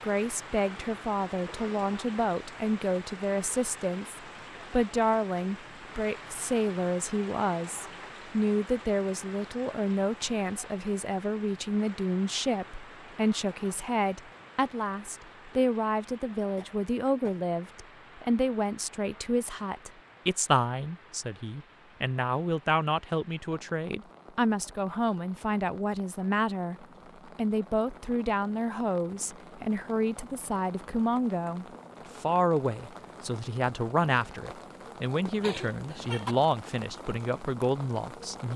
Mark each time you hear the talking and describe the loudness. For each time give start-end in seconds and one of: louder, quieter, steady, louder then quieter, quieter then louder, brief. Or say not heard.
0.0-38.5 steady.